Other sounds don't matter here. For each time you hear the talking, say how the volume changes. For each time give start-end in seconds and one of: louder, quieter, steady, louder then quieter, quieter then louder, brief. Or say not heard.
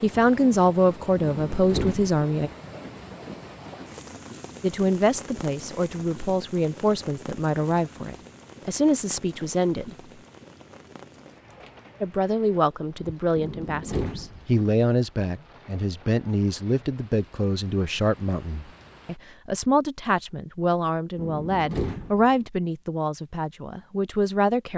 0.0-2.5 brief
4.6-9.9 steady
12.0-24.7 steady.